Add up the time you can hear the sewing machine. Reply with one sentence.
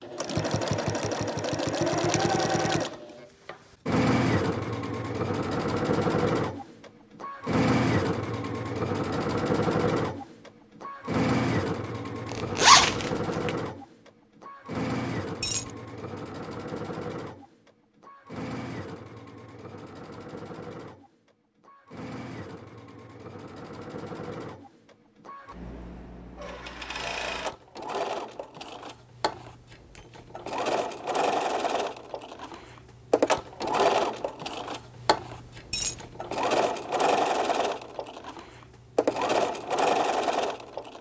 You can hear the sewing machine for 41 seconds altogether.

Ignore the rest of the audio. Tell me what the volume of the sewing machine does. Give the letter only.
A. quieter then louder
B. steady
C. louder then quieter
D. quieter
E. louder
A.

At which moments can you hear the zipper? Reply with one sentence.
The zipper can be heard from 12.3 to 13.5 s.